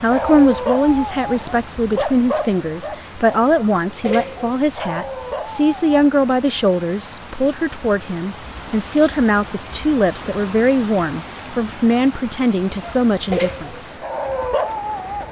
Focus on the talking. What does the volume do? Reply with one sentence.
The volume of the talking stays about the same.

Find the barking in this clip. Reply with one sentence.
You can hear the barking from 0.0 to 6.1 s and from 12.8 to 15.2 s.